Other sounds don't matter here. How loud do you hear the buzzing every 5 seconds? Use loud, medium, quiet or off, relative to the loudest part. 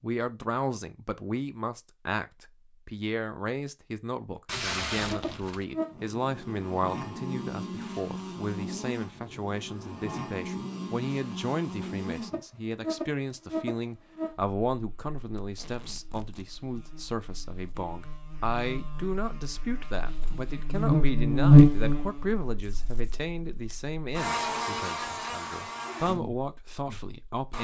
off, quiet, quiet, quiet, loud, quiet.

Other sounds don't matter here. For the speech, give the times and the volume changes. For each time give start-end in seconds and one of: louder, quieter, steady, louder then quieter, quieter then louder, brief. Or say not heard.
0.0-27.5 steady.